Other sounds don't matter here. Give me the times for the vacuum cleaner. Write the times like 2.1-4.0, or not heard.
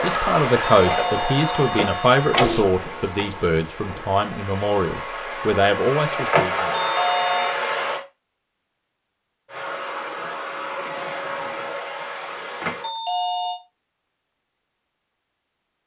0.0-8.1, 9.4-12.9.